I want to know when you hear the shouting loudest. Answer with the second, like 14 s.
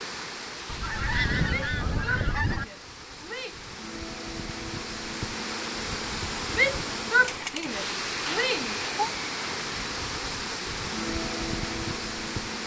7 s.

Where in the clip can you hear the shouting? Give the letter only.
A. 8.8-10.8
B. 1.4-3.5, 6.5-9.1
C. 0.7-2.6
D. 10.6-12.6
B.